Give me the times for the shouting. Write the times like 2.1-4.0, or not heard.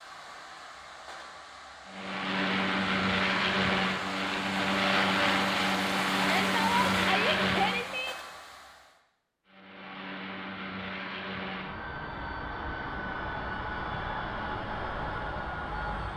6.2-8.2.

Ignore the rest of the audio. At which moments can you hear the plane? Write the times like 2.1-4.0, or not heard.
1.9-8.0, 9.4-16.1.